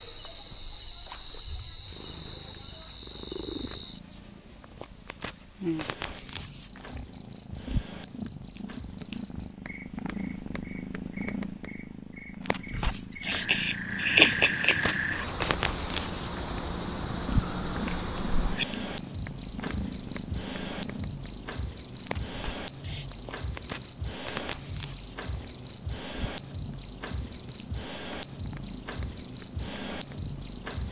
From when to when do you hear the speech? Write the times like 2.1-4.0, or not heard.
not heard.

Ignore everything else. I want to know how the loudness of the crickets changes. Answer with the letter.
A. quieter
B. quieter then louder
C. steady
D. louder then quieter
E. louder
E.